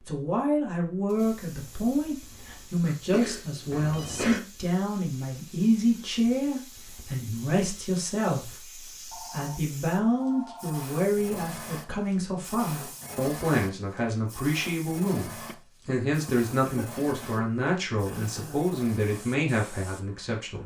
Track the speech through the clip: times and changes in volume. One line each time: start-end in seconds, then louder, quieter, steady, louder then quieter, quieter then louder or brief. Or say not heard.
0.1-20.6 steady.